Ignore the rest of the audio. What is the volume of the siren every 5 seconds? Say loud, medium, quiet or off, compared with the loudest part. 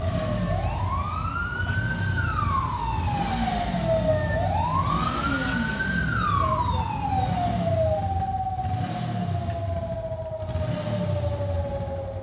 loud, loud, medium.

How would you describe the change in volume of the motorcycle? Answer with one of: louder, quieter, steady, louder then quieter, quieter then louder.
steady.